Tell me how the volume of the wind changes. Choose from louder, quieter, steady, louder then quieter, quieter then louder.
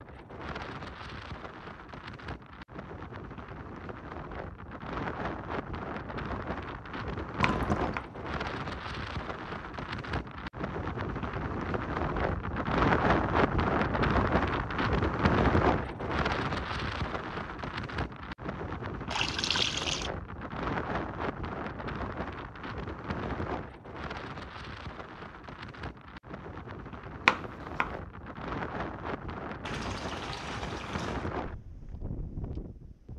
louder then quieter.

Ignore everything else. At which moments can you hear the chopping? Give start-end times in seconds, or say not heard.
7.4-8.1, 27.2-27.9.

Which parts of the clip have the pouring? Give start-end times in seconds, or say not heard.
7.4-8.0, 19.1-20.1, 29.6-31.3.